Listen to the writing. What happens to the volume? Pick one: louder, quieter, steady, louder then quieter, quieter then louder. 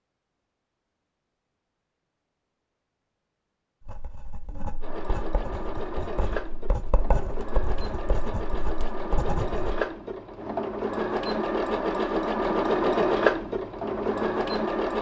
louder.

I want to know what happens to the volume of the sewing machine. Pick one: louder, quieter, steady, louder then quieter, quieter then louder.
louder.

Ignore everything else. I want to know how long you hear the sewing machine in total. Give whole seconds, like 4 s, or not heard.
10 s.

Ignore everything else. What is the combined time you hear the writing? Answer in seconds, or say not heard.
6 s.